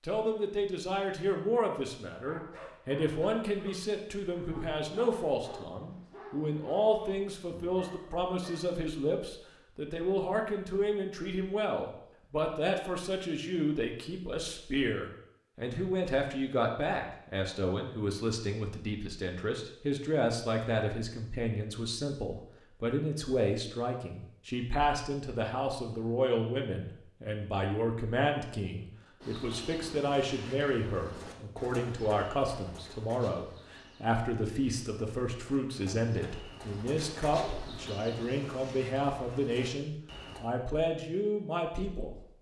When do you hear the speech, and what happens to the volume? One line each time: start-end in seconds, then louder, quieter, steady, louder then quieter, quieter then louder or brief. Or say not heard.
0.0-42.2 steady.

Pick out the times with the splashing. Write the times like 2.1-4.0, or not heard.
not heard.